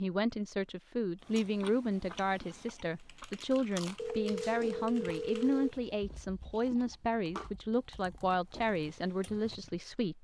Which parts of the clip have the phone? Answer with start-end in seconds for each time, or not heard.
4.0-5.8.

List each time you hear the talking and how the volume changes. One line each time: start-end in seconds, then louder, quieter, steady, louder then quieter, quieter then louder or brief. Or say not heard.
0.0-10.1 steady.